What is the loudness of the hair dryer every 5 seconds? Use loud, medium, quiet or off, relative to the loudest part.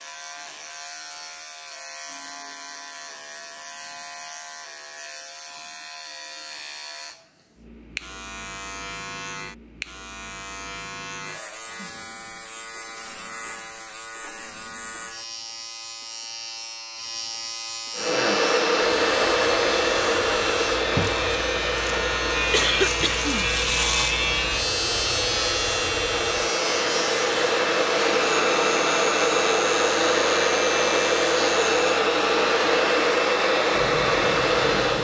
off, off, off, loud, medium, loud, loud.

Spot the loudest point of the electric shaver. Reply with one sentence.
The volume of the electric shaver peaks at 24 seconds.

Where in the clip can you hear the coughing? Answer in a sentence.
The coughing can be heard from 22.5 to 23.5 s.